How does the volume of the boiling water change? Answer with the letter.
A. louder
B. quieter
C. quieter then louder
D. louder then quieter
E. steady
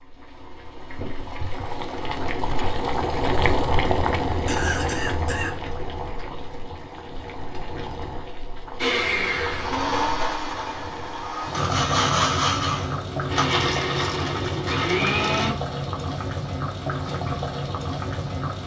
C.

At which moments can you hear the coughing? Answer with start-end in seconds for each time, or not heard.
4.5-5.5.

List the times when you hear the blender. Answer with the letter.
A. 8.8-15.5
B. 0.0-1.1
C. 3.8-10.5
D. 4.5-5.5
A.